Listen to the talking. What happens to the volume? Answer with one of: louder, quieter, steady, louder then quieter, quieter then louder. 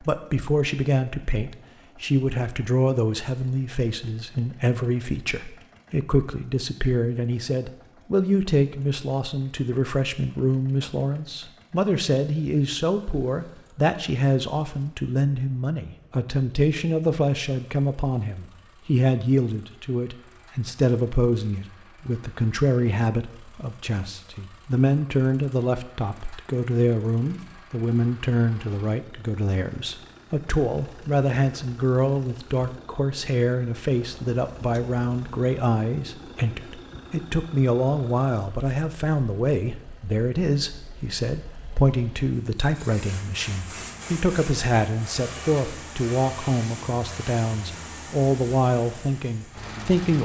steady.